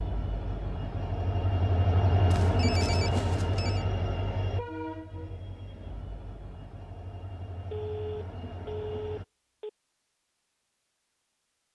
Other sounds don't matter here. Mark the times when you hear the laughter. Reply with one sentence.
The laughter can't be heard in this clip.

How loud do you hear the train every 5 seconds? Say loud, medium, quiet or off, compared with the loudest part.
loud, quiet, off.